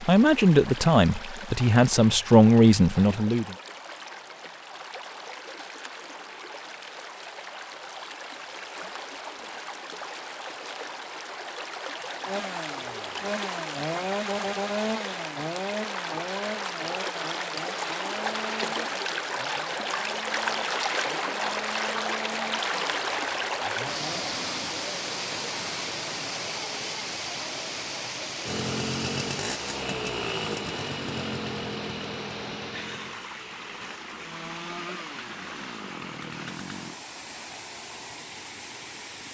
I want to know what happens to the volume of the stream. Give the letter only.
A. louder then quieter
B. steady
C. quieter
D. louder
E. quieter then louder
A.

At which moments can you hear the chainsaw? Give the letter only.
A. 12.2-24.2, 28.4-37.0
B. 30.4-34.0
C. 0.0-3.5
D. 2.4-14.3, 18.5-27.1
A.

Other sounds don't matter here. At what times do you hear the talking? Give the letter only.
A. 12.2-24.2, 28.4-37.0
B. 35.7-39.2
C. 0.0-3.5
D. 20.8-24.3
C.